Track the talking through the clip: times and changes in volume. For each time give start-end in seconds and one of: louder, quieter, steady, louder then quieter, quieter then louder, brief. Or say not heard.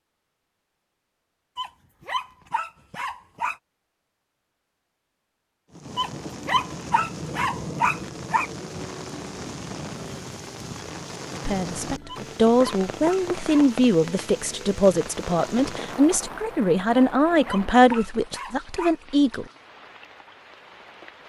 11.4-19.4 steady.